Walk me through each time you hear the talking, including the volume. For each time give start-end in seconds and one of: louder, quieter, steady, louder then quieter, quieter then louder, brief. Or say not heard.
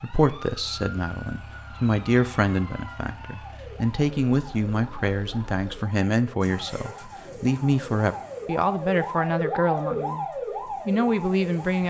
0.0-10.2 steady
10.8-11.8 brief.